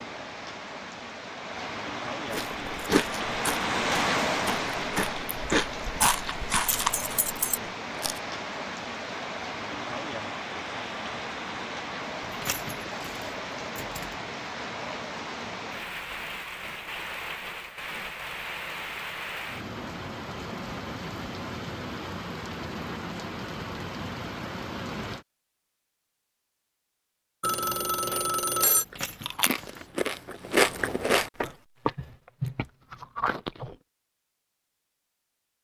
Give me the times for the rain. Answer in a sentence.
You can hear the rain from 0.0 to 25.2 s.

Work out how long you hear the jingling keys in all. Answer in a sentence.
The jingling keys can be heard for 4 seconds in total.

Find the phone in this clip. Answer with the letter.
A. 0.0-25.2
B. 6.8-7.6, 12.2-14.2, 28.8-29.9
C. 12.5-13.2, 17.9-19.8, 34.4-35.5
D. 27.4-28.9
D.